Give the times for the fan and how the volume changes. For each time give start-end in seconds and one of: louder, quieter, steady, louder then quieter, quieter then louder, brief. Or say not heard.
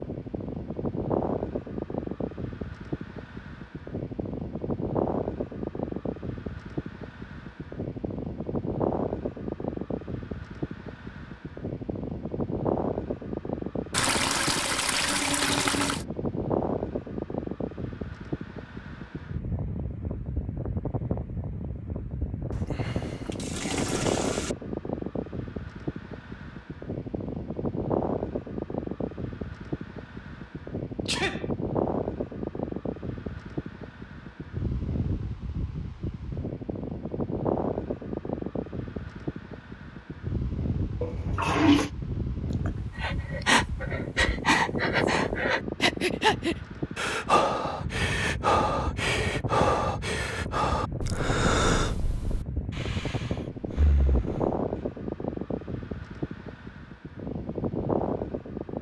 0.0-58.7 steady.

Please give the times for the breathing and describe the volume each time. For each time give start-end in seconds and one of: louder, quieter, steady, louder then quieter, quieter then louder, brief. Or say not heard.
42.6-54.5 quieter.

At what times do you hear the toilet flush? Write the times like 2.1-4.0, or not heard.
13.9-16.1, 22.5-24.6, 41.0-41.9.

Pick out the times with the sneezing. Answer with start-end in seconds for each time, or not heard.
31.1-31.5.